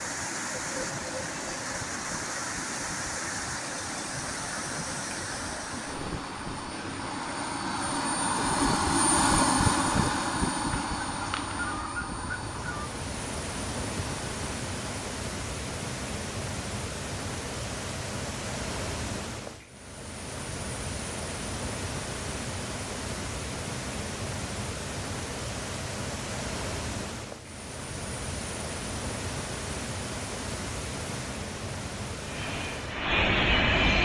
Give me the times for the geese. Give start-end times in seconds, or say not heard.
10.9-12.9.